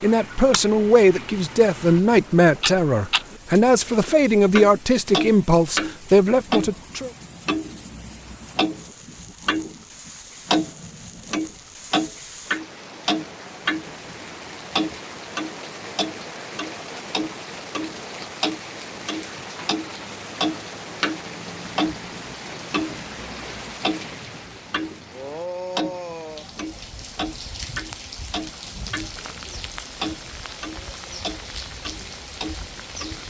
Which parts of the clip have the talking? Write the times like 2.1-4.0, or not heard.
0.0-7.1.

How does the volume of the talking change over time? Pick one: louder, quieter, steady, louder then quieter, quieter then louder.
steady.